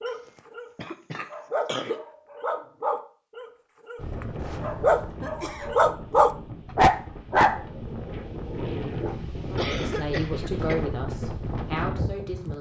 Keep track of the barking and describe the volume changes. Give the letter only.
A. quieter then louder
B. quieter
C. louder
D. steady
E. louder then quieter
E.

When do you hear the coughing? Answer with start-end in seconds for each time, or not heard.
0.1-2.0, 4.3-5.7, 9.6-11.0.